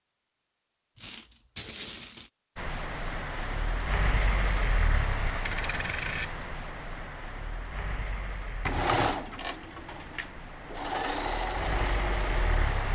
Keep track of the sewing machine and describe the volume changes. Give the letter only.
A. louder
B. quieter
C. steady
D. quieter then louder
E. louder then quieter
D.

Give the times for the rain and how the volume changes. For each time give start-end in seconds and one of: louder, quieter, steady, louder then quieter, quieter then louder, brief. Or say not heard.
2.5-12.9 quieter then louder.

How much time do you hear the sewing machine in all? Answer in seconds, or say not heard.
4 s.